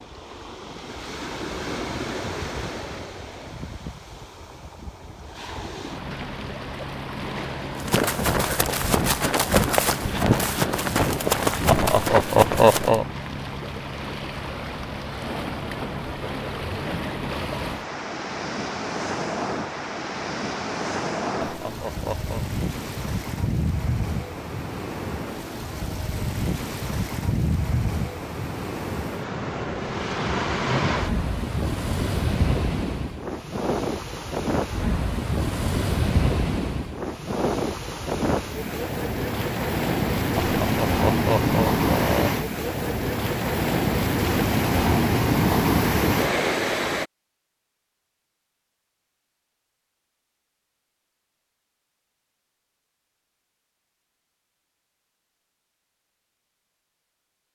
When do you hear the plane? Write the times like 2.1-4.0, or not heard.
not heard.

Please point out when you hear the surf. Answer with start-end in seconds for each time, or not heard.
0.0-47.0.